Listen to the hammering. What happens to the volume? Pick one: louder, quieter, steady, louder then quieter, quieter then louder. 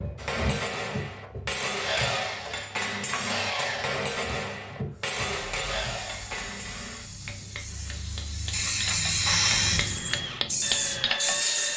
quieter then louder.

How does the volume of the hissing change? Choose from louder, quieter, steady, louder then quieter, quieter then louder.
louder.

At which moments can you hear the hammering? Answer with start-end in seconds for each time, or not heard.
0.1-11.4.